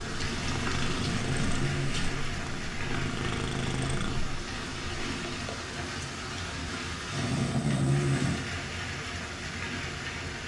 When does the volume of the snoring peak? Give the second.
8 s.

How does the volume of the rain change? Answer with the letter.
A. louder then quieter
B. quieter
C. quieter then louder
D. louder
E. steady
E.